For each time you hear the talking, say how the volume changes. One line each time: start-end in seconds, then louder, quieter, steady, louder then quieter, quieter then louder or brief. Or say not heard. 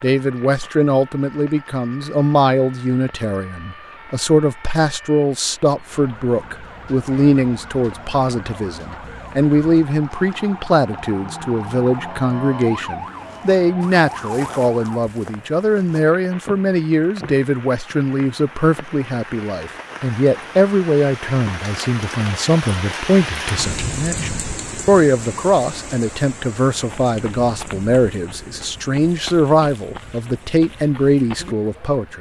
0.0-32.1 steady.